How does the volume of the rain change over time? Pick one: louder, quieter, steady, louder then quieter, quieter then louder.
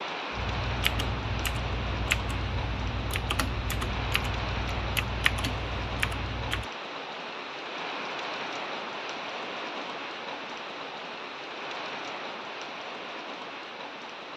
steady.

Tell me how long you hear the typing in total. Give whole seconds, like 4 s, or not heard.
6 s.